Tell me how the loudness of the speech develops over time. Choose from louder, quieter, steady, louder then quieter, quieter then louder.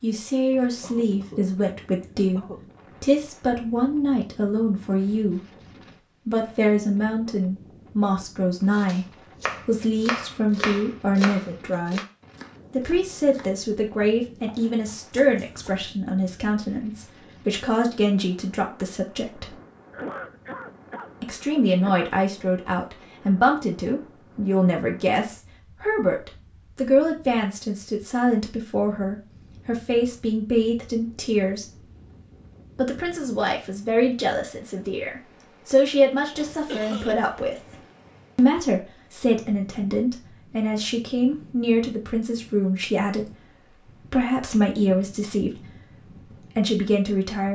steady.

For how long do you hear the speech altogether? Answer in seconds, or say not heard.
43 s.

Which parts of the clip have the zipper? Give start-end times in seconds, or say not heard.
not heard.